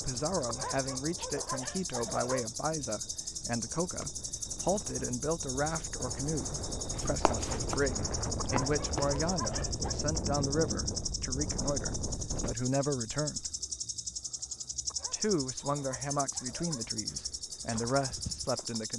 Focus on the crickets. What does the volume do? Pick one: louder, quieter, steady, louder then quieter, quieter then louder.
steady.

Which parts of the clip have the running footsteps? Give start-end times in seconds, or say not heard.
6.9-9.2.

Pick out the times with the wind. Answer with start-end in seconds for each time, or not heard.
0.0-12.6.